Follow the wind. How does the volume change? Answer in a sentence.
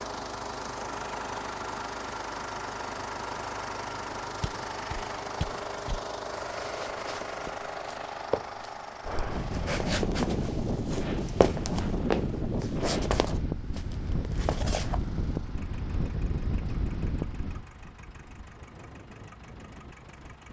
The loudness of the wind goes down.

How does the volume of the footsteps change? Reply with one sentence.
The loudness of the footsteps goes up, then down.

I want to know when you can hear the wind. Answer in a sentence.
The wind can be heard from 9.1 to 20.4 s.